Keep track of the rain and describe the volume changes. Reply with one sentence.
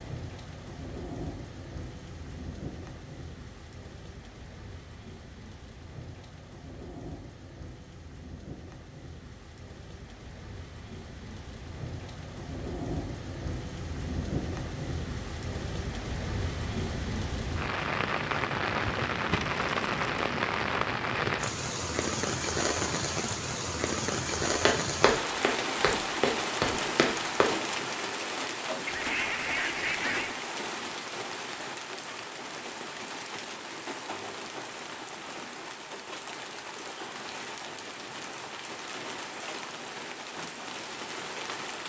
The loudness of the rain goes up, then down.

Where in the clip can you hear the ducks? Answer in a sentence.
You can hear the ducks from 28.9 to 30.4 s.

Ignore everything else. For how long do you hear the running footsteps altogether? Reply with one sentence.
The running footsteps can be heard for 3 seconds in total.